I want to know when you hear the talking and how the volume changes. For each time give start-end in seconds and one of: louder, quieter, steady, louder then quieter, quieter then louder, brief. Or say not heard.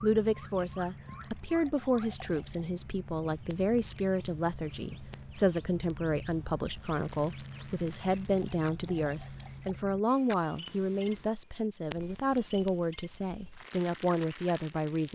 0.0-15.1 steady.